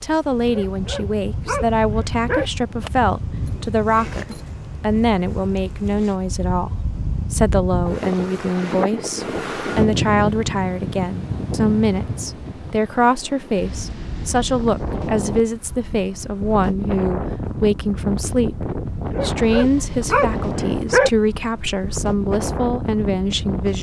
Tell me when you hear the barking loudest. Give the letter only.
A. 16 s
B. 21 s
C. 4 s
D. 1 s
B.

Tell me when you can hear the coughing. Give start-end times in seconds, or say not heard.
not heard.